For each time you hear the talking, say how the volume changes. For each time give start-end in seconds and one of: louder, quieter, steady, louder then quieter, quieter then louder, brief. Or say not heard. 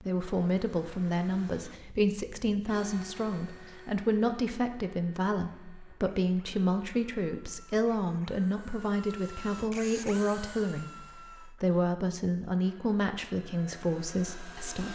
0.0-14.9 steady.